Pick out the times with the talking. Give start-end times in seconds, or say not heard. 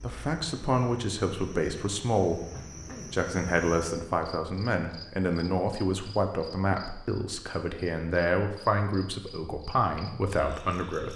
0.0-2.5, 3.1-11.1.